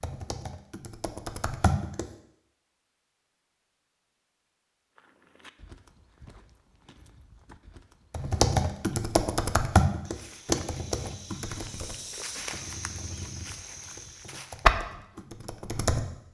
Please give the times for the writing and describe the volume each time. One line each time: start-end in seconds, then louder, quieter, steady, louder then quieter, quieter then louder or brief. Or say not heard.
not heard.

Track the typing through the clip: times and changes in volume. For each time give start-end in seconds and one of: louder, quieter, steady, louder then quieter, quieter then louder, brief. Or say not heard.
0.0-2.1 brief
8.1-16.1 quieter then louder.